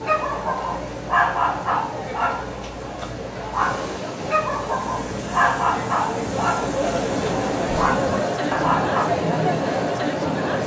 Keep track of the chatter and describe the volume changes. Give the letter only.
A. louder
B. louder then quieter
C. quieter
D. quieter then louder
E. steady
A.